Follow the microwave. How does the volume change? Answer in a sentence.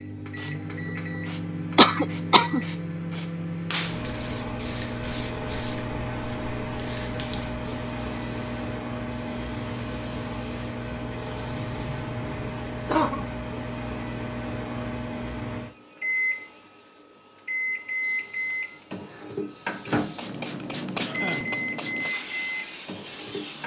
The volume of the microwave stays about the same.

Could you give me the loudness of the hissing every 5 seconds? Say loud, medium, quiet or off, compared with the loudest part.
medium, medium, quiet, medium, loud.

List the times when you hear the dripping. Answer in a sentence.
You can't hear the dripping here.